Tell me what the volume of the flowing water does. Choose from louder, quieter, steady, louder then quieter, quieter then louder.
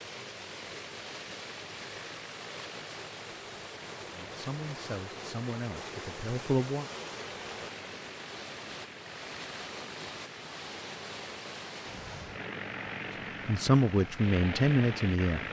quieter.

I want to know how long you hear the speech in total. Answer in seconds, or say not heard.
5 s.